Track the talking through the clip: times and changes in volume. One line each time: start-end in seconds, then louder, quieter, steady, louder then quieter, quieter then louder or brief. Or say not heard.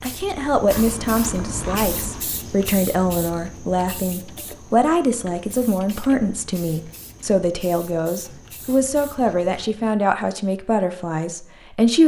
0.0-12.0 steady.